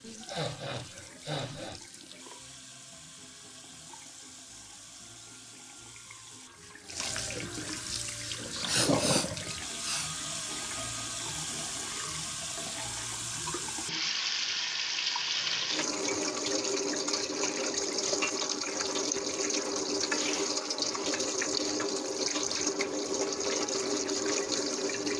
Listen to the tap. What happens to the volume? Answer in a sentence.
The volume of the tap goes up.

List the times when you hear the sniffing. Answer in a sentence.
The sniffing can be heard from 0.0 to 1.8 s, from 8.7 to 10.1 s and from 20.1 to 20.6 s.